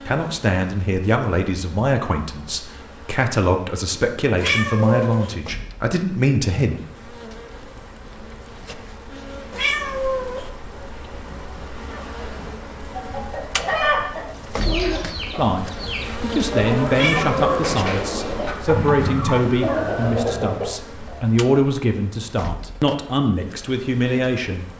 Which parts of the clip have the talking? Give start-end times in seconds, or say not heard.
0.0-6.8, 15.3-24.6.